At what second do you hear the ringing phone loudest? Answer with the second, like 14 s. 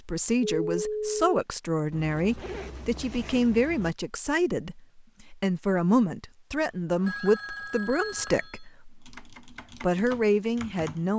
1 s.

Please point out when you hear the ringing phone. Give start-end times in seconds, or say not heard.
0.4-1.3, 7.0-8.6.